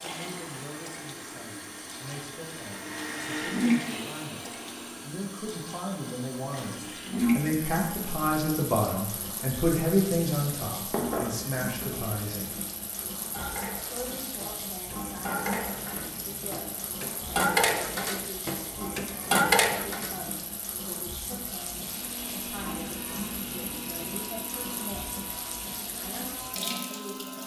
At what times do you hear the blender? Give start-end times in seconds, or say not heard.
0.0-5.2, 21.8-27.4.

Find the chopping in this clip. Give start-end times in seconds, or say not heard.
not heard.